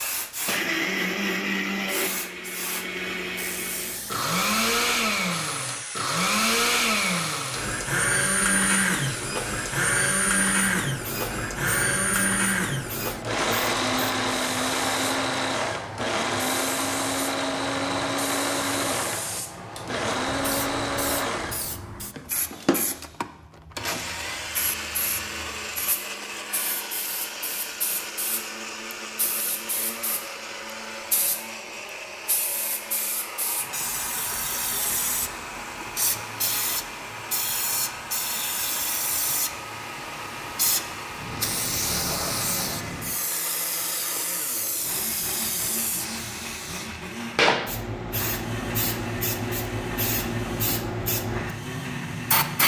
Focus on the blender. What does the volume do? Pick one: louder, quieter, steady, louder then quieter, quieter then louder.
quieter.